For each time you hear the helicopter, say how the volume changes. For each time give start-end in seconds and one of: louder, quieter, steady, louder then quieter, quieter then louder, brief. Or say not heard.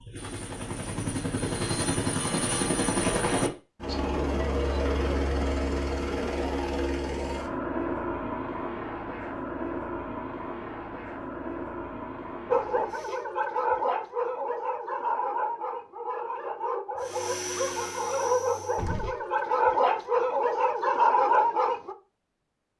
0.0-13.2 quieter
17.0-18.9 brief.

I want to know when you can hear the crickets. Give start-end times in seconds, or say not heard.
not heard.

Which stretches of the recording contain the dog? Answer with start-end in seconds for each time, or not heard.
12.5-21.9.